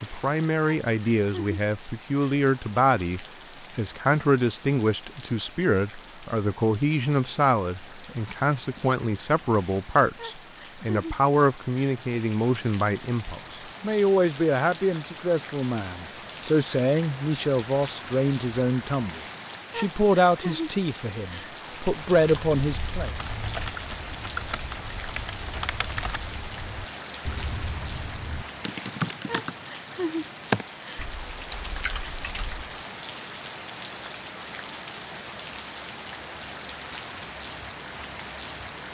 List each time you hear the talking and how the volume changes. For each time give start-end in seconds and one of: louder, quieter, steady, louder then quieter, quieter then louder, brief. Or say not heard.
0.0-23.1 steady.